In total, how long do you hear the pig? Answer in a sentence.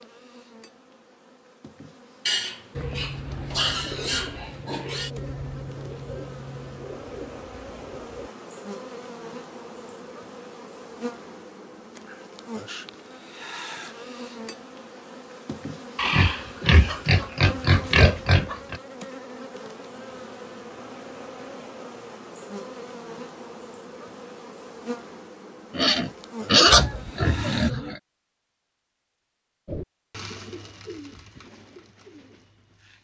The pig can be heard for 8 seconds in total.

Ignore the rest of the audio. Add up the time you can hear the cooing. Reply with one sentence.
The cooing can be heard for 9 seconds in total.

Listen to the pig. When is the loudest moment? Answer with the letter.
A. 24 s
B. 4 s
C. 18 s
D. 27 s
D.